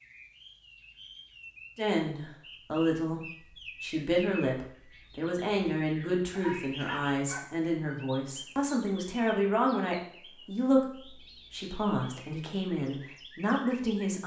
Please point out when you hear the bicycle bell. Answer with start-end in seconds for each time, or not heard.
not heard.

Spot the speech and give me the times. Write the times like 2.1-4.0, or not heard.
1.8-14.2.